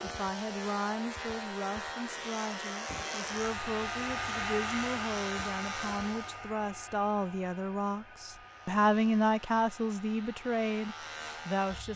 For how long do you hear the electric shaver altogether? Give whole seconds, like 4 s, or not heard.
10 s.